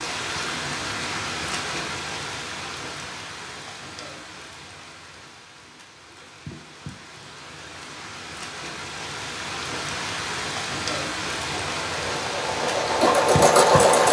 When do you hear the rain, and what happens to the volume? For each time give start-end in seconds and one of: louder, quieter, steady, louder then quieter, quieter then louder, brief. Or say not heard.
0.0-14.0 quieter then louder.